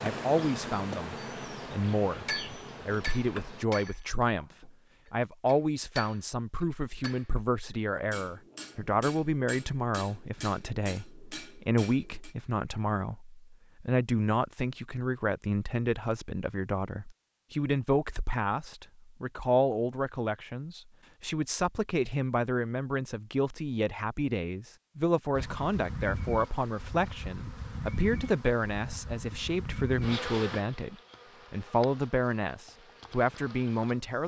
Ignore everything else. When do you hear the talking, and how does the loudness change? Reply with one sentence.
You can hear the talking from 0.0 to 34.2 s, at a steady volume.